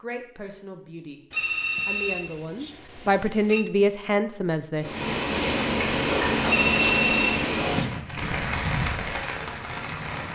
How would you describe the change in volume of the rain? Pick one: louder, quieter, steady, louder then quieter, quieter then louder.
quieter.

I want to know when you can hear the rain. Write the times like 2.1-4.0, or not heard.
4.8-10.3.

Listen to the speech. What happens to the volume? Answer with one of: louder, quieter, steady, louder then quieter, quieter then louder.
louder.